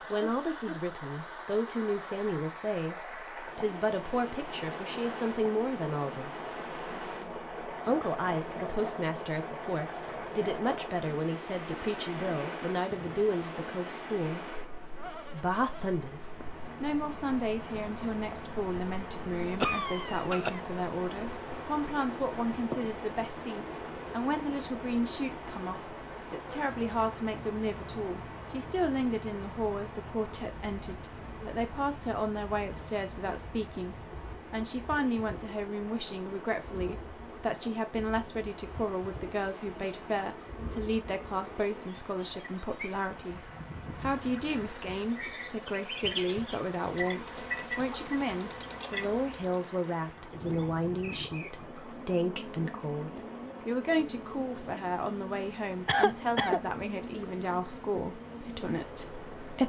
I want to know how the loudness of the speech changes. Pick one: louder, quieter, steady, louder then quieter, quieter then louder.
steady.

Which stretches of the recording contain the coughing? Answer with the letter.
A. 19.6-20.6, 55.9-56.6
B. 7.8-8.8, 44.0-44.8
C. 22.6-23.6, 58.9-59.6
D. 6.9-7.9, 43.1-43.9
A.